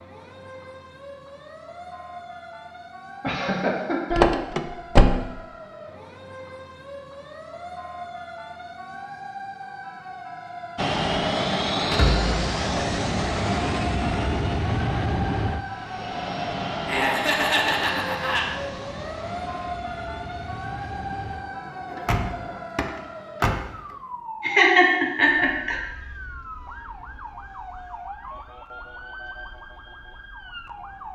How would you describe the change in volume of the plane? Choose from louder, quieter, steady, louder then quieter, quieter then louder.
quieter.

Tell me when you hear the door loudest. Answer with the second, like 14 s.
5 s.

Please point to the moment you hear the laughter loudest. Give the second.
25 s.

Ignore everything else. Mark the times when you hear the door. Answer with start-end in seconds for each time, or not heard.
4.1-5.2, 11.8-12.4, 21.9-23.7.